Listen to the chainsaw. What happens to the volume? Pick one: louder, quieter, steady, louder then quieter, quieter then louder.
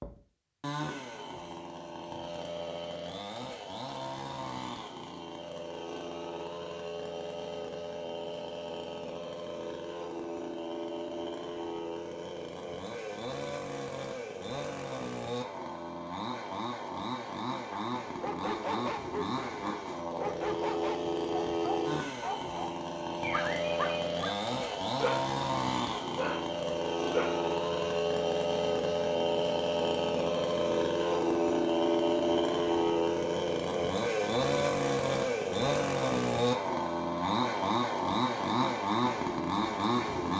louder.